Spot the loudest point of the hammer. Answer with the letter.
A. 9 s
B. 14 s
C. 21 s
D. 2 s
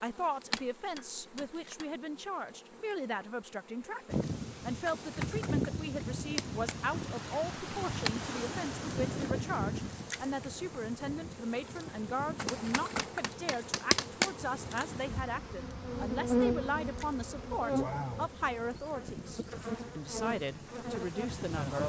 B.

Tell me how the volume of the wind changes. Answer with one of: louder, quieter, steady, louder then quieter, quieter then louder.
quieter.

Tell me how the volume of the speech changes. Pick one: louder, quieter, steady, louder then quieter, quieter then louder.
steady.